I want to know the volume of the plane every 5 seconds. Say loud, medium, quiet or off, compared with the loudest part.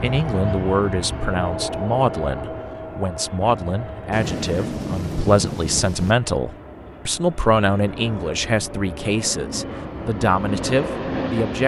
loud, medium, loud.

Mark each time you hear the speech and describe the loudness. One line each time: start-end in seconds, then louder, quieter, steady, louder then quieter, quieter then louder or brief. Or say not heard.
0.0-11.6 steady.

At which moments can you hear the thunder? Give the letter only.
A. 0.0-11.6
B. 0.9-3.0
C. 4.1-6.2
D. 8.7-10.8
C.